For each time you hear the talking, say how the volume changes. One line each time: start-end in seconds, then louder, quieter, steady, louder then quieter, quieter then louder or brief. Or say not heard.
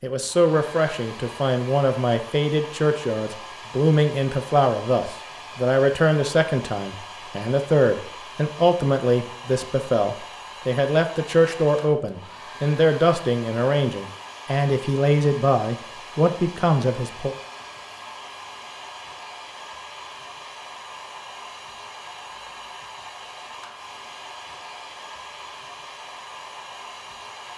0.0-17.4 steady.